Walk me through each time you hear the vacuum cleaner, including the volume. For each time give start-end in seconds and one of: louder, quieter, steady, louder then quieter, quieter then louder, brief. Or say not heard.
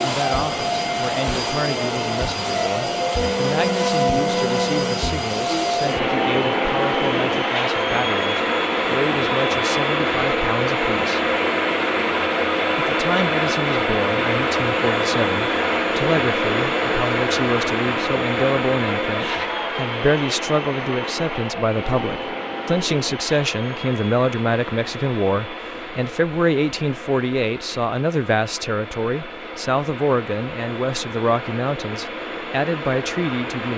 0.0-33.7 quieter.